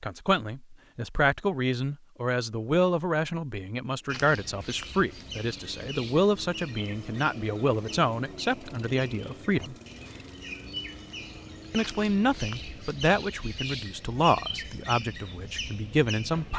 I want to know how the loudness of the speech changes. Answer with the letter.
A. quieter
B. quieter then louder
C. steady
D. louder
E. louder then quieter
C.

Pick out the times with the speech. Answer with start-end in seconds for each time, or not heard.
0.0-9.8, 11.7-16.5.